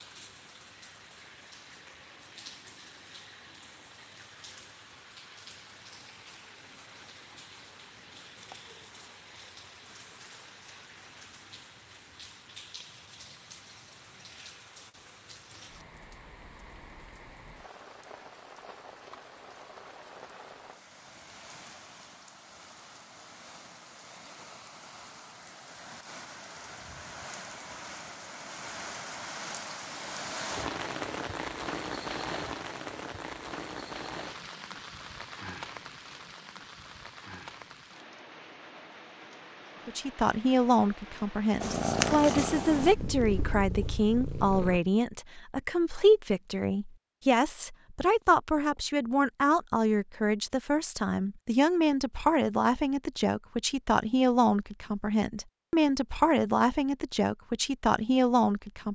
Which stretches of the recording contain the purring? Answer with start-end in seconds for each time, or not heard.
41.6-44.8.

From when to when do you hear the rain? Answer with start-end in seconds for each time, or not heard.
0.0-41.6.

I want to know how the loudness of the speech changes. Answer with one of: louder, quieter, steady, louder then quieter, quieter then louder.
steady.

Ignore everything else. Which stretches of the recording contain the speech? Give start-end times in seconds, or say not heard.
39.9-58.9.